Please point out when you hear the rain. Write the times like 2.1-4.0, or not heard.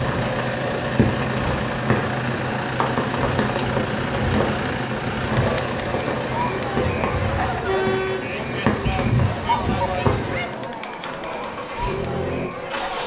0.0-10.4.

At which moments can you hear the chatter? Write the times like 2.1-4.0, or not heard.
5.2-13.0.